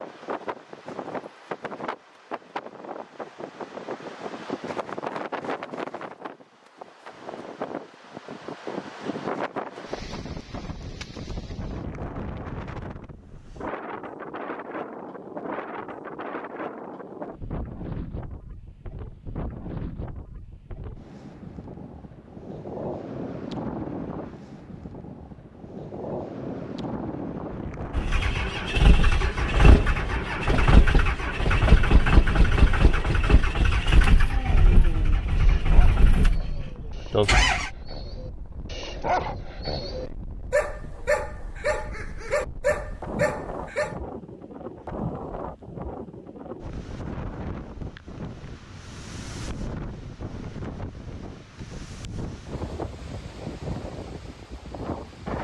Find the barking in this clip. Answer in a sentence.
The barking can be heard from 34.3 to 44.0 s.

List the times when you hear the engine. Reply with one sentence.
You can hear the engine from 27.9 to 37.7 s.